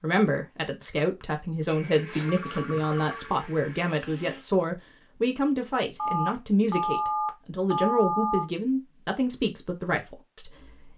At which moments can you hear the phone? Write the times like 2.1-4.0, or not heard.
2.1-3.4, 6.0-8.4.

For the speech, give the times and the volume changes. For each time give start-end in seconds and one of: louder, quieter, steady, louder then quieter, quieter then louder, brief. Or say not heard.
0.0-10.9 steady.